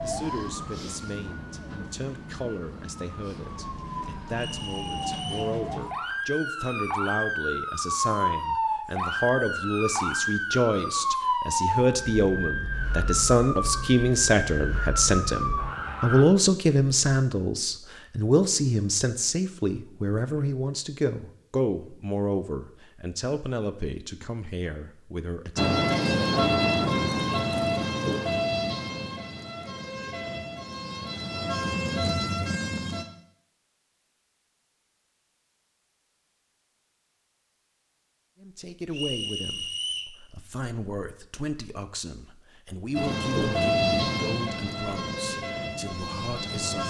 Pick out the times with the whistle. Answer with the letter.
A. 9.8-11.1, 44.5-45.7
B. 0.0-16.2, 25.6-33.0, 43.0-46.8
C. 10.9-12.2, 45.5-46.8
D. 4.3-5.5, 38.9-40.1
D.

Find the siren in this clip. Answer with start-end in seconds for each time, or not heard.
0.0-16.2, 25.6-33.0, 43.0-46.8.